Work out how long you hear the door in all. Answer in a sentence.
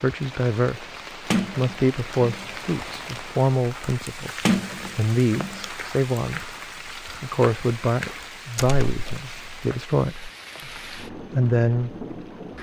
The door can be heard for 3 seconds in total.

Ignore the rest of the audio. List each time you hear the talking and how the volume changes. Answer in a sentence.
You can hear the talking from 0.0 to 12.1 s, at a steady volume.